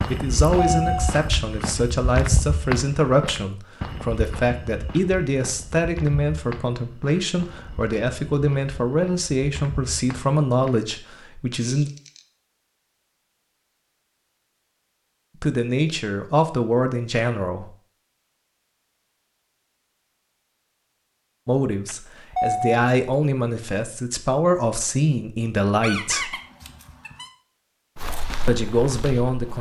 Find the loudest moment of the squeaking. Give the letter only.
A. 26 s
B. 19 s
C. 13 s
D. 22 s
A.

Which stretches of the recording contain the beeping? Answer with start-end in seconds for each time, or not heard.
0.1-1.1, 21.9-22.8.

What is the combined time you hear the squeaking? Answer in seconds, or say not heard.
2 s.